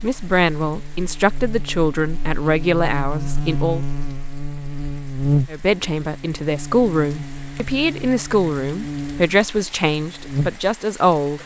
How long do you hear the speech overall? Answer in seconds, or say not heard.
10 s.